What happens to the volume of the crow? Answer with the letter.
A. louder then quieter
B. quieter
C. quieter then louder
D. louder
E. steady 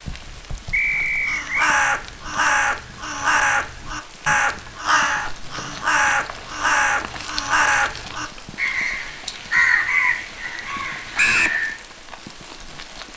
E.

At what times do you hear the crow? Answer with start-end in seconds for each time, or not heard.
1.1-11.8.